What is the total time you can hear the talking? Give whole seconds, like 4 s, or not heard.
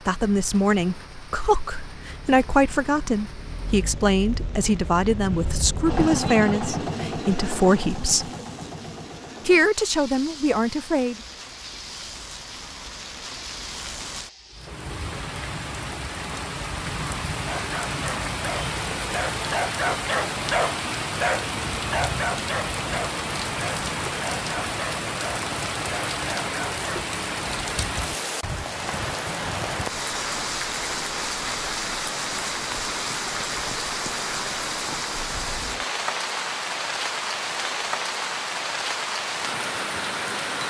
10 s.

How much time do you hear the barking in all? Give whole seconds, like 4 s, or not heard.
10 s.